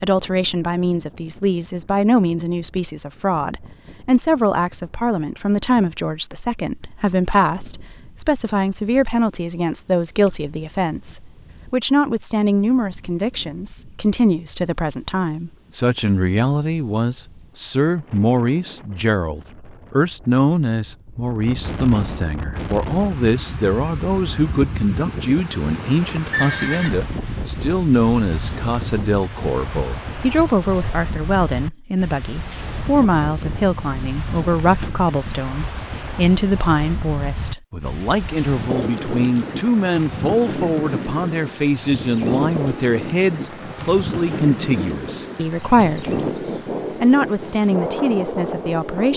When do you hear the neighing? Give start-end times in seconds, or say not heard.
26.3-26.9.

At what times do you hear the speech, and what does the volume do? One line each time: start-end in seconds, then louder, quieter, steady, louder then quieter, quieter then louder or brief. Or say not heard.
0.0-46.2 steady
47.0-49.1 brief.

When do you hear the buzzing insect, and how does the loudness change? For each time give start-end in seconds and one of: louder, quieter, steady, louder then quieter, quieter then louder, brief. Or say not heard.
not heard.